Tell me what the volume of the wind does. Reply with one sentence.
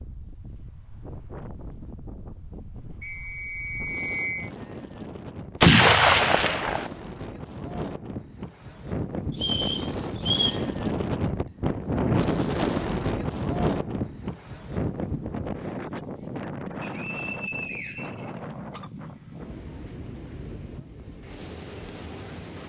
The volume of the wind goes up, then down.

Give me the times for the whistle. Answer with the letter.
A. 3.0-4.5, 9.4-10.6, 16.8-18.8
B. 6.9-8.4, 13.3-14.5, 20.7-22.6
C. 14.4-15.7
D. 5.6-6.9
A.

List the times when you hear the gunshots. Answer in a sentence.
You can hear the gunshots from 5.6 to 6.9 s.